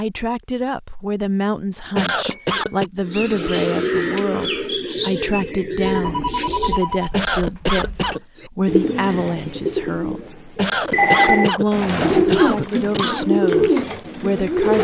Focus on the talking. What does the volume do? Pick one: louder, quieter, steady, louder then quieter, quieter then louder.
steady.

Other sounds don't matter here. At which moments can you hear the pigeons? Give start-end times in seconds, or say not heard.
3.0-6.8, 8.4-14.7.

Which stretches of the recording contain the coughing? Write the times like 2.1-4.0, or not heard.
1.9-2.9, 7.1-8.2, 10.6-13.2.